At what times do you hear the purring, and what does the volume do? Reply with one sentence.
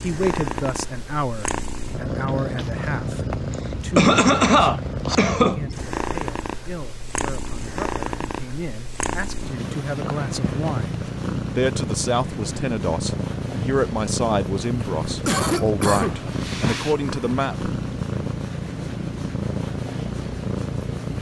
You can hear the purring from 0.0 to 21.1 s, at a steady volume.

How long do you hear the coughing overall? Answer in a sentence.
The coughing can be heard for 3 seconds in total.